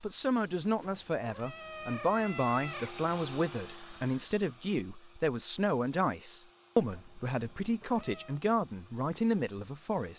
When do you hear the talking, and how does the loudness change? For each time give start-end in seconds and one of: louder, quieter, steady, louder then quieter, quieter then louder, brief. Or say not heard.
0.0-10.1 steady.